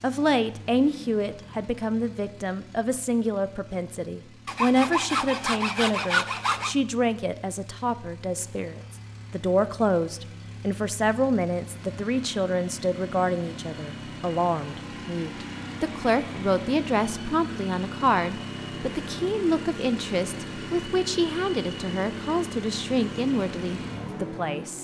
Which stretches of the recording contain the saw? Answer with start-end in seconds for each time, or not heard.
4.5-6.8.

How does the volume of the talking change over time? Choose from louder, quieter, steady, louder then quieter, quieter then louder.
steady.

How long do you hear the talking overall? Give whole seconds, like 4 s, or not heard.
25 s.